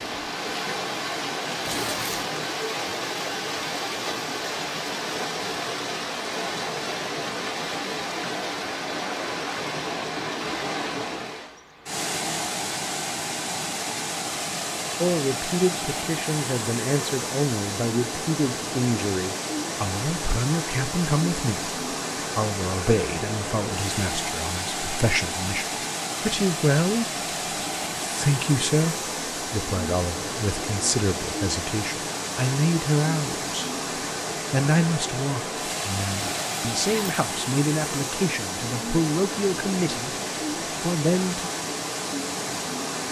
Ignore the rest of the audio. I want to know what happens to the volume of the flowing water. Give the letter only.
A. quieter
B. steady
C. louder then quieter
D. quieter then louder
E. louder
B.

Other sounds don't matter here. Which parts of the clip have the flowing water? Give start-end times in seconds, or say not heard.
0.0-43.0.